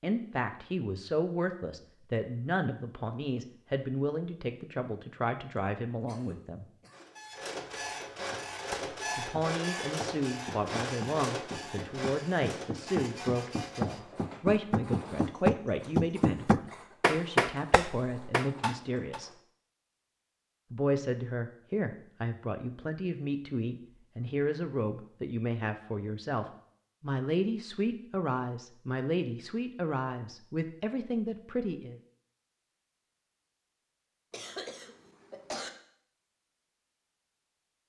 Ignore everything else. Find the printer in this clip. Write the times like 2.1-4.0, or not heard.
6.9-19.4.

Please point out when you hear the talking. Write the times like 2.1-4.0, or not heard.
0.0-6.7, 9.2-19.3, 20.7-32.0.